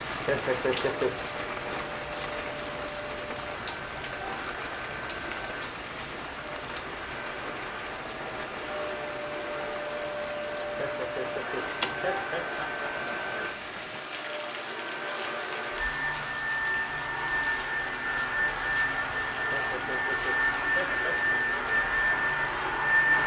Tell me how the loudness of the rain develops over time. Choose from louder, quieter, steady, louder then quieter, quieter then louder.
quieter.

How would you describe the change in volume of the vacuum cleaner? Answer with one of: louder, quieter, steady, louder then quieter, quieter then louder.
louder.